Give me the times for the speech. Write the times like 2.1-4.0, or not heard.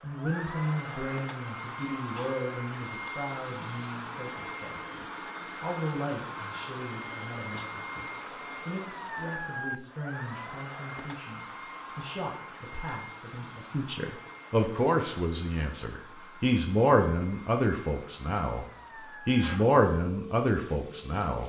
0.0-18.6, 19.2-21.4.